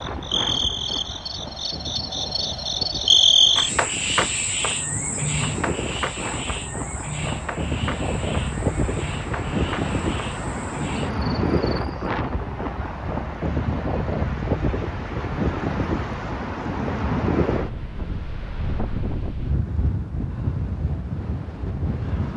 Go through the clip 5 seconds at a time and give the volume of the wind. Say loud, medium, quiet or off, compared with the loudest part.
medium, loud, loud, loud, loud.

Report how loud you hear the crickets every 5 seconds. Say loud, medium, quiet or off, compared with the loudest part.
loud, medium, quiet, off, off.